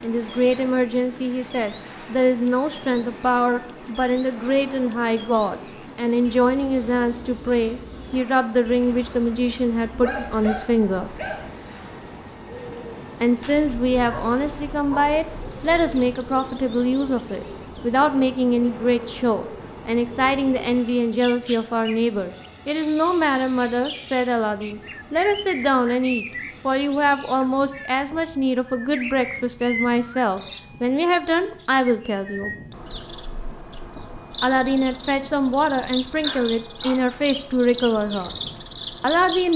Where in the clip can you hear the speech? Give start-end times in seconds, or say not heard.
0.0-11.2, 13.2-32.5, 34.4-38.3, 39.0-39.5.